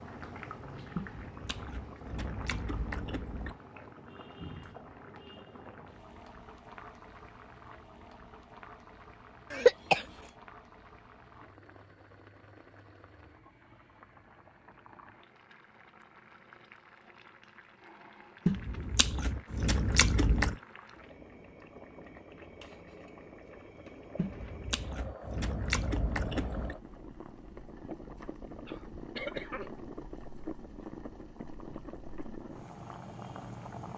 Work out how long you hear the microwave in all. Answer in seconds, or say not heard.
not heard.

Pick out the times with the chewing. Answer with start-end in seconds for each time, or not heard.
0.9-3.6, 18.4-20.6, 24.1-26.8.